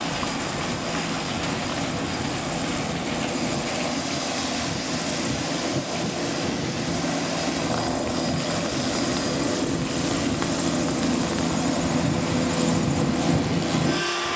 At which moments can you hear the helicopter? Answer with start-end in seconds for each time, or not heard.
0.0-14.3.